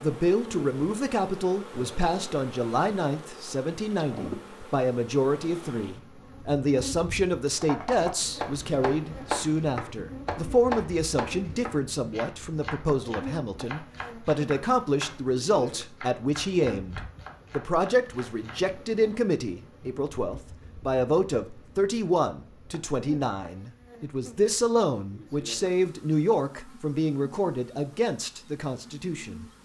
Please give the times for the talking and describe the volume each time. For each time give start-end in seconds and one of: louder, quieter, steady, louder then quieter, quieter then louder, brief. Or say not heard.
0.0-29.4 steady.